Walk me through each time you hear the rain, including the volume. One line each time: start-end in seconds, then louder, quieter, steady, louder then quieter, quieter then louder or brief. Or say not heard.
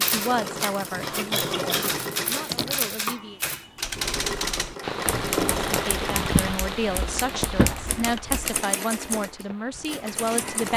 4.8-10.7 quieter.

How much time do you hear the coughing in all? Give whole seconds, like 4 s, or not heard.
2 s.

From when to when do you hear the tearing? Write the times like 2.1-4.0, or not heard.
not heard.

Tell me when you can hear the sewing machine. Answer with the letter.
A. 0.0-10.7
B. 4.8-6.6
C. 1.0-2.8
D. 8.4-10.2
A.